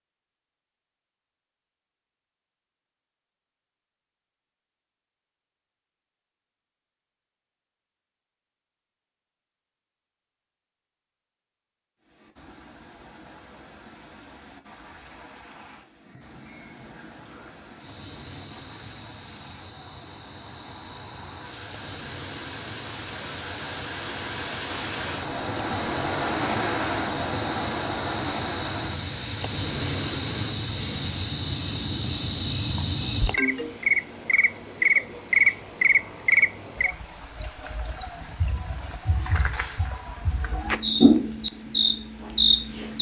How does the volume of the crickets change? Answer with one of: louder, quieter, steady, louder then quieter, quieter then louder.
louder.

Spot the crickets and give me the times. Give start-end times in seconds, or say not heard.
16.0-42.9.